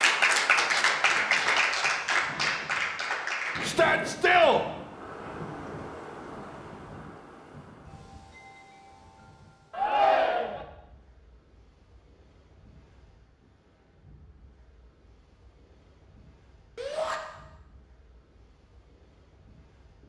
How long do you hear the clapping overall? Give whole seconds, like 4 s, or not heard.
4 s.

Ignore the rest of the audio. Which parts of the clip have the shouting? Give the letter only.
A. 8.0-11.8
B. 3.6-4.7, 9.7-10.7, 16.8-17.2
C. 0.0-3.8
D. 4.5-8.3
B.